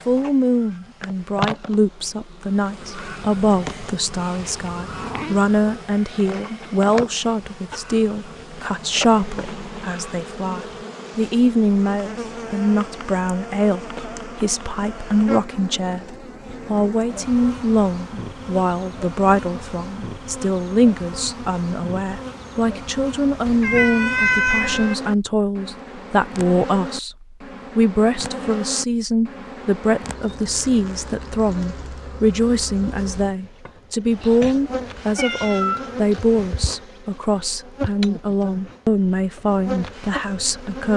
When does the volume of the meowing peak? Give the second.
24 s.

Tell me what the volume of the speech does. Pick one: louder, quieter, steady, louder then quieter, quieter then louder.
steady.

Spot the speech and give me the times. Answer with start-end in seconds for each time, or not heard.
0.1-40.9.